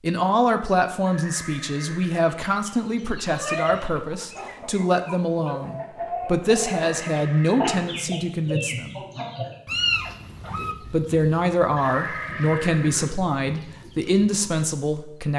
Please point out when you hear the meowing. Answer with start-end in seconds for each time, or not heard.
3.2-5.7, 9.7-10.8.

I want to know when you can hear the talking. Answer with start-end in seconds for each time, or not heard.
0.0-9.0, 10.8-15.3.